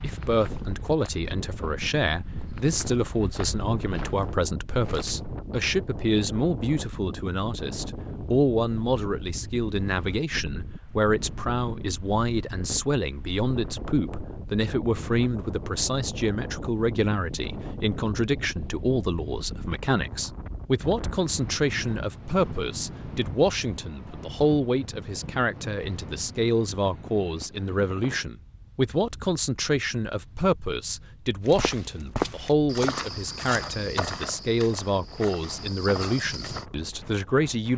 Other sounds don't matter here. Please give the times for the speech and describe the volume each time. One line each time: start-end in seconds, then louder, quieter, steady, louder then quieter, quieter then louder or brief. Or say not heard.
0.0-37.7 steady.